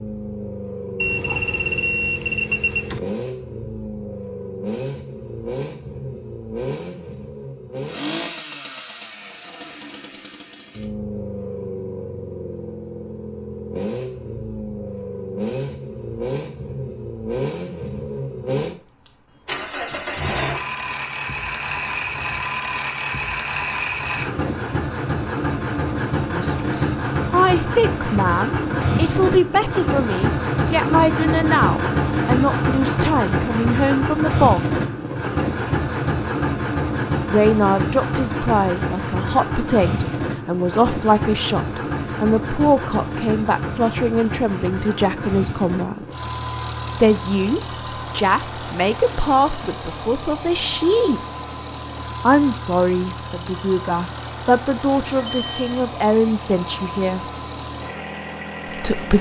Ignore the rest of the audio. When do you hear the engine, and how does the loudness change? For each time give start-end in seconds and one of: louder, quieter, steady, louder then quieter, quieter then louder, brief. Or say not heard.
0.0-59.1 louder then quieter.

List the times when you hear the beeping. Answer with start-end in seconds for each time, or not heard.
1.0-3.0, 55.3-55.8.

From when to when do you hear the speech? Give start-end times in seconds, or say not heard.
26.3-34.8, 37.3-46.0, 47.0-51.2, 52.2-57.2, 58.6-59.1.